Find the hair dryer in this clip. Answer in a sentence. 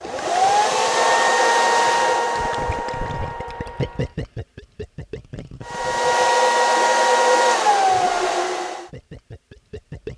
You can hear the hair dryer from 0.0 to 4.2 s and from 5.7 to 8.9 s.